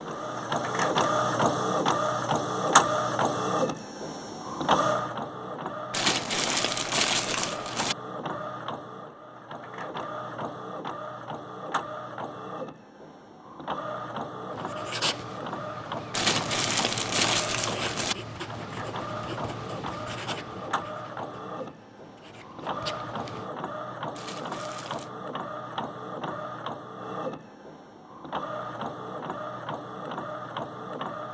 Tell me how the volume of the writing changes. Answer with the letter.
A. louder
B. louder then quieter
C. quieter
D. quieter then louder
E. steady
C.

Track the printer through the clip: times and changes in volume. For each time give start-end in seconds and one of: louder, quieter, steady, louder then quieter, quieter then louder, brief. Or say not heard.
0.0-31.2 quieter.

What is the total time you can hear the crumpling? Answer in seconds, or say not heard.
5 s.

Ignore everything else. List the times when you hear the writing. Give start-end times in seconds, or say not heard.
14.5-23.5.